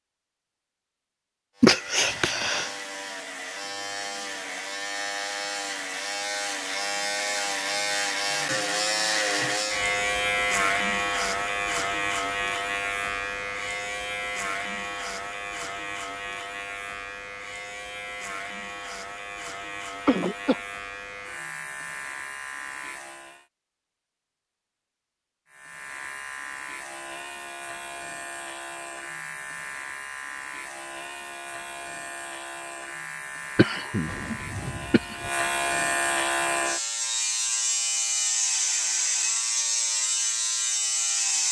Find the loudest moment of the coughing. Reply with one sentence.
The loudest moment of the coughing is at 2 seconds.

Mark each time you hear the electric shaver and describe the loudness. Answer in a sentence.
The electric shaver can be heard from 1.6 to 23.4 s, getting louder then quieter; and from 25.5 to 41.4 s, getting louder.